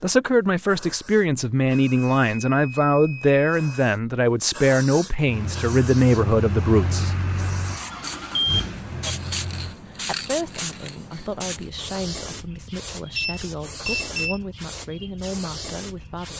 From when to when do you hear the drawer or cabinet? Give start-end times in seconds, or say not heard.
not heard.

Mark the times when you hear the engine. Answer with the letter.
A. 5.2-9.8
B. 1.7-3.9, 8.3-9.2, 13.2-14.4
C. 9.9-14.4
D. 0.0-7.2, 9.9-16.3
A.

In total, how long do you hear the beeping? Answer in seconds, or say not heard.
4 s.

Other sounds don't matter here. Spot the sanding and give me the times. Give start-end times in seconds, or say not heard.
not heard.